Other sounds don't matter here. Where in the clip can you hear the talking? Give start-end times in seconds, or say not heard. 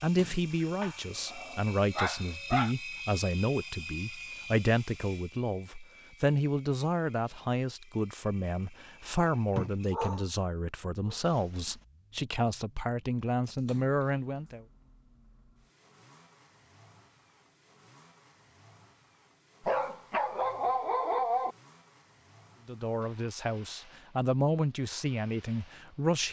0.0-14.7, 22.6-26.2.